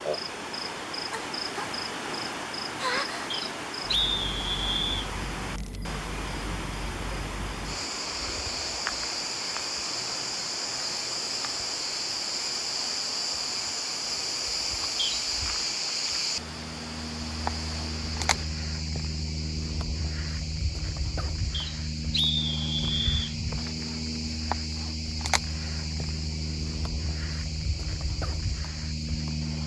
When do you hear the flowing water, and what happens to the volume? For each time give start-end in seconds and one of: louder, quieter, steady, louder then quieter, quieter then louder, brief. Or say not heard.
0.0-18.4 quieter.